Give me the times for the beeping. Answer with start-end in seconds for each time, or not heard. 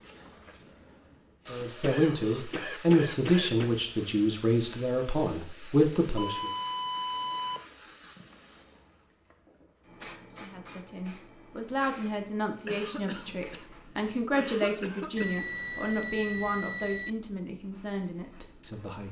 6.2-7.7, 15.2-17.1.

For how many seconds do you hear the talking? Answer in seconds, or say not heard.
14 s.